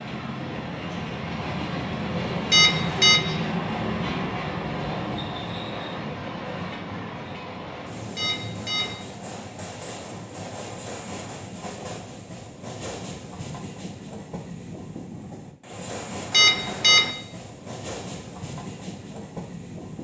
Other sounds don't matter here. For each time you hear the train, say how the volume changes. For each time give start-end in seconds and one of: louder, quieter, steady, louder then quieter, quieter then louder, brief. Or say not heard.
0.0-19.9 quieter.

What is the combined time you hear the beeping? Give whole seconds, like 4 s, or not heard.
2 s.